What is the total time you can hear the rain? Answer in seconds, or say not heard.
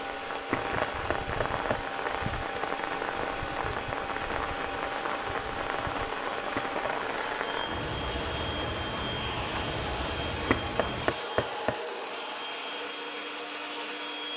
11 s.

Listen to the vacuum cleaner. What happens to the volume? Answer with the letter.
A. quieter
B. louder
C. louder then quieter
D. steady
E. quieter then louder
D.